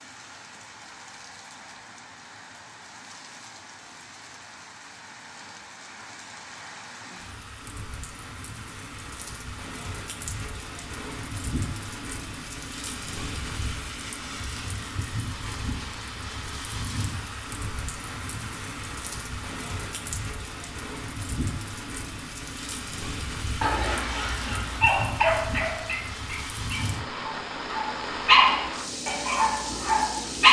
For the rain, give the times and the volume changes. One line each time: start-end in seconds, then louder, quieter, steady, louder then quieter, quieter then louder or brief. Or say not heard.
0.0-30.4 louder.